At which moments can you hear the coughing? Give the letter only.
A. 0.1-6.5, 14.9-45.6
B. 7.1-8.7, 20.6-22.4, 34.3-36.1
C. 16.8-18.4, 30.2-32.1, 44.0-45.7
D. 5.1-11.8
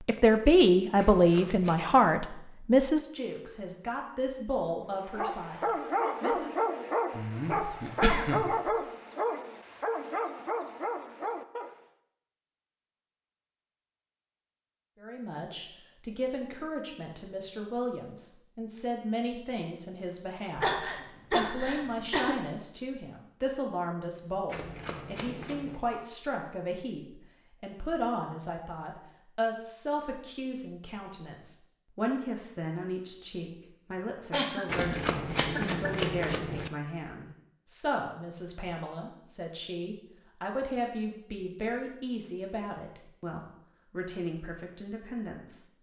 B.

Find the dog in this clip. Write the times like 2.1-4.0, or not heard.
5.1-11.8.